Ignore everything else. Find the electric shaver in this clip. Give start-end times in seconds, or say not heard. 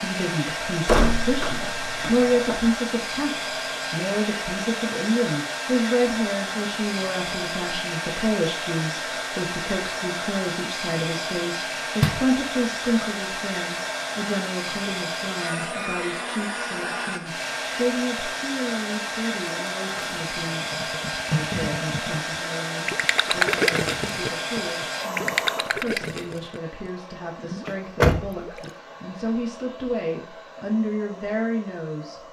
not heard.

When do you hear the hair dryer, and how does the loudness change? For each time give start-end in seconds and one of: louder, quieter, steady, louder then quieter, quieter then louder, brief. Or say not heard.
0.0-32.2 quieter.